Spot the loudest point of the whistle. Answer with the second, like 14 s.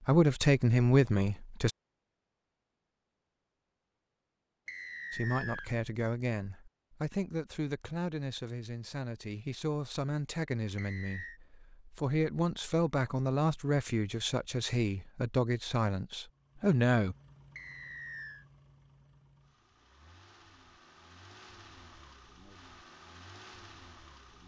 5 s.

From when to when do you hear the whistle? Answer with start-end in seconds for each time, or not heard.
4.7-5.7, 10.8-11.4, 17.6-18.4.